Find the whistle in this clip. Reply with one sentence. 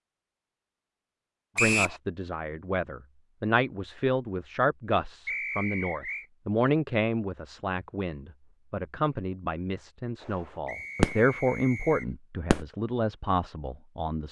The whistle can be heard from 1.6 to 2.0 s, from 5.2 to 6.2 s and from 10.7 to 12.1 s.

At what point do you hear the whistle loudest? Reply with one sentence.
The loudest moment of the whistle is at 2 seconds.